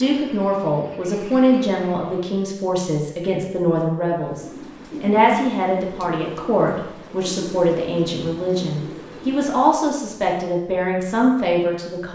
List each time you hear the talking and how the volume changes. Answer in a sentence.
The talking can be heard from 0.0 to 12.0 s, at a steady volume.